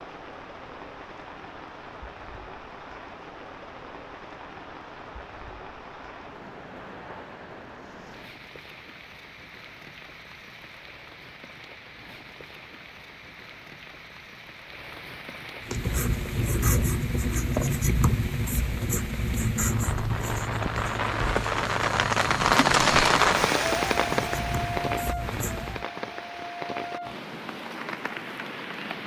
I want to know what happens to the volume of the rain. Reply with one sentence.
The volume of the rain goes up.